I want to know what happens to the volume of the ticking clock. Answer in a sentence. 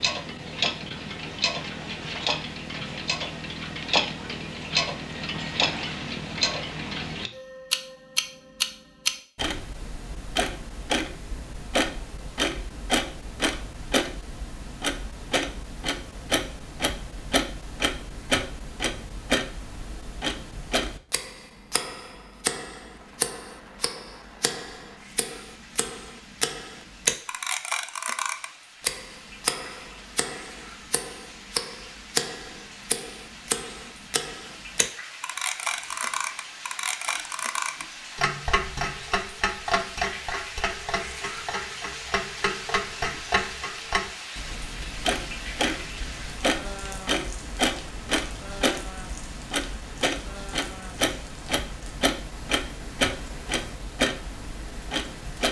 The volume of the ticking clock stays about the same.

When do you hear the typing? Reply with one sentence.
You can't hear the typing here.